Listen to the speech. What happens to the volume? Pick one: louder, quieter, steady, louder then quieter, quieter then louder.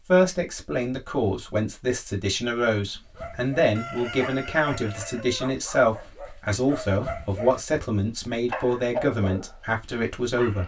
steady.